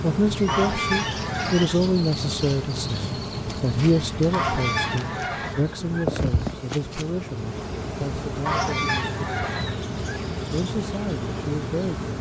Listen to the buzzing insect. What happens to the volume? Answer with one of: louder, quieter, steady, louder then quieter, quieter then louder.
steady.